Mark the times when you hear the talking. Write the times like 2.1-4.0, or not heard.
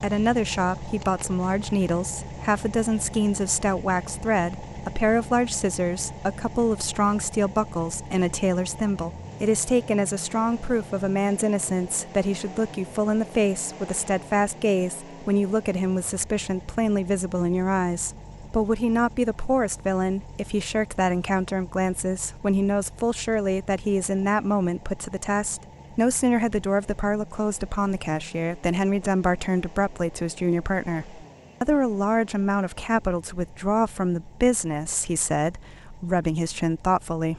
0.0-37.3.